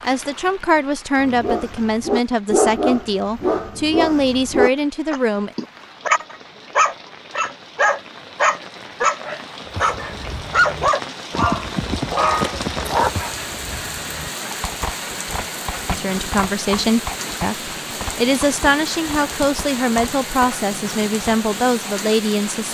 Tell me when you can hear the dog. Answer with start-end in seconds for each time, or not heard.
1.1-13.1.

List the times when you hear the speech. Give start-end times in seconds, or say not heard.
0.0-5.5, 15.9-22.6.